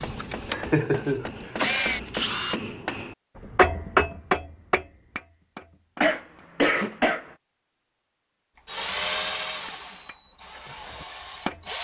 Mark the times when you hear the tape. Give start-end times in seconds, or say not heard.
not heard.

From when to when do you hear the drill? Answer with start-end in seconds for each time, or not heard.
0.0-2.5, 8.6-11.7.